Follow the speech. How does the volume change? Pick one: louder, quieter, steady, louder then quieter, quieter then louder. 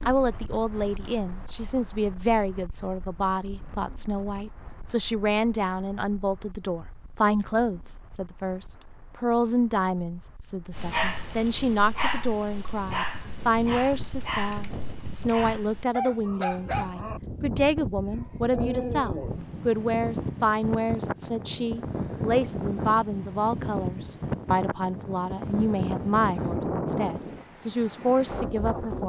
steady.